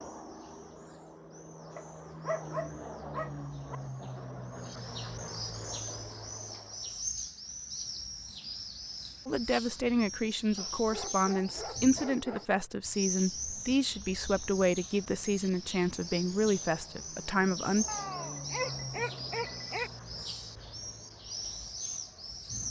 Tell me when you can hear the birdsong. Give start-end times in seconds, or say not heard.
0.0-22.6.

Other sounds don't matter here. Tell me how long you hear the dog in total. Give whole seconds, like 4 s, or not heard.
6 s.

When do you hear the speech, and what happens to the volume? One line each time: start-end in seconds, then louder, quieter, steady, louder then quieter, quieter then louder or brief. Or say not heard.
9.2-17.9 steady.